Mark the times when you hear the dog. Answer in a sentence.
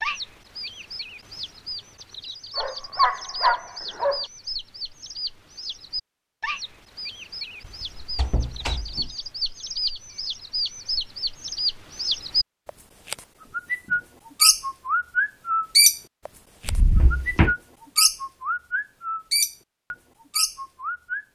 You can hear the dog from 2.5 to 4.2 s.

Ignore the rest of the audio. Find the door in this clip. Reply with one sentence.
You can hear the door from 7.7 to 9.2 s and from 16.6 to 17.6 s.